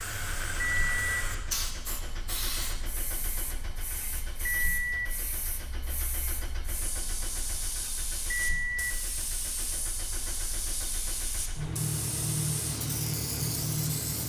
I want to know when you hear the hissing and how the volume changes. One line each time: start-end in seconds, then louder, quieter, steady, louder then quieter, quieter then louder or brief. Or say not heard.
0.0-14.2 quieter then louder.